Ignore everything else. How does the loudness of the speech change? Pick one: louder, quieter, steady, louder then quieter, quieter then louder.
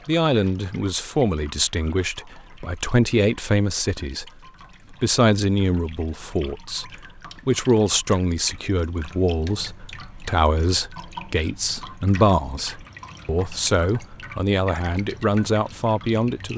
steady.